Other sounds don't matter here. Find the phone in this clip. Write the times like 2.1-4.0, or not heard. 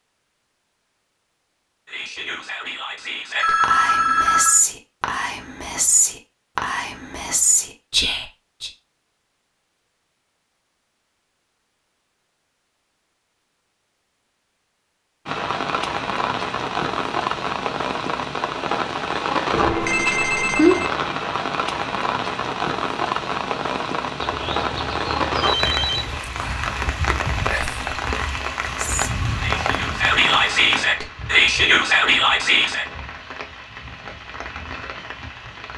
3.4-4.6, 19.5-20.9, 24.2-26.2.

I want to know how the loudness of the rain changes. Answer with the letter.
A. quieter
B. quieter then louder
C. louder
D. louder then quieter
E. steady
A.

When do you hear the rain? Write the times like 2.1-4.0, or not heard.
15.2-35.7.